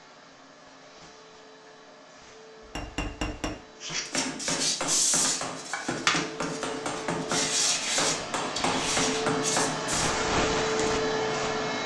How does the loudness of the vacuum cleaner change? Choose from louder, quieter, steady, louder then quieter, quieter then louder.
louder.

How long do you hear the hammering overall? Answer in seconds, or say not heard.
7 s.